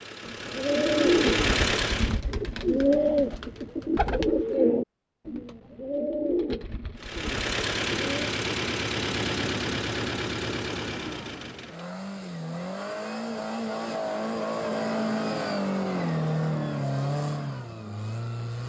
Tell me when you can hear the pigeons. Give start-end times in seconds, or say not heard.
0.2-8.3.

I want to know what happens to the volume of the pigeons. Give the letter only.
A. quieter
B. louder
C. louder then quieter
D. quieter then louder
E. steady
A.